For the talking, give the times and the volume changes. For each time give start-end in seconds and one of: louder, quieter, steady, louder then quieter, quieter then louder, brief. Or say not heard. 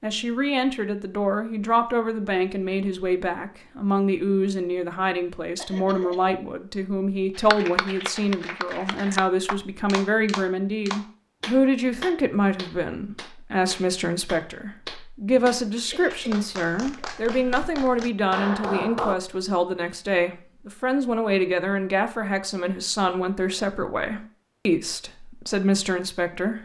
0.0-26.6 steady.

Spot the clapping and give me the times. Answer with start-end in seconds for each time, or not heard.
7.3-19.1.